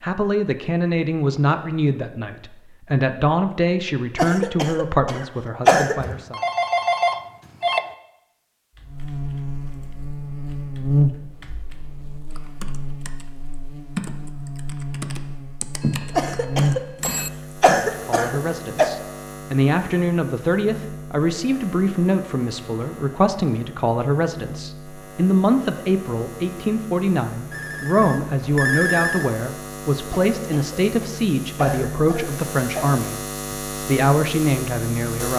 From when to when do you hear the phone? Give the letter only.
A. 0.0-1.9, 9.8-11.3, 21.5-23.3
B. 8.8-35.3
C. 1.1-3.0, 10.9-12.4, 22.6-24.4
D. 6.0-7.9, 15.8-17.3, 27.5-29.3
D.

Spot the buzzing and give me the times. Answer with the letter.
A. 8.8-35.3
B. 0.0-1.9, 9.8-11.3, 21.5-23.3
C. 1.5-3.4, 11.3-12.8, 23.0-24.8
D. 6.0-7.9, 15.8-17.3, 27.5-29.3
A.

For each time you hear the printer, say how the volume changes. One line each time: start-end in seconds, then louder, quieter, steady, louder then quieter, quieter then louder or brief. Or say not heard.
not heard.